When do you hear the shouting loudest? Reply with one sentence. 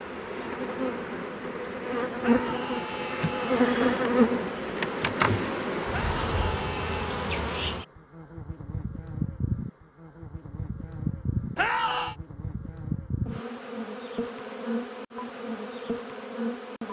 The volume of the shouting peaks at 12 seconds.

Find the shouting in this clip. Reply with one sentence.
You can hear the shouting from 2.2 to 3.6 s, from 5.9 to 7.1 s and from 11.6 to 12.2 s.